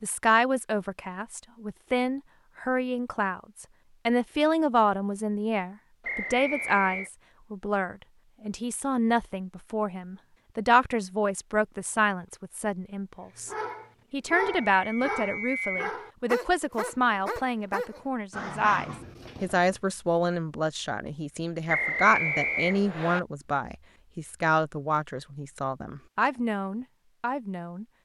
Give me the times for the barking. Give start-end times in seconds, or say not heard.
13.3-19.8.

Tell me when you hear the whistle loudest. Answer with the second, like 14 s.
22 s.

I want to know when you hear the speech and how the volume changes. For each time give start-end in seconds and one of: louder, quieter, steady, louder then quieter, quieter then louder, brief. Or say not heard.
0.0-27.9 steady.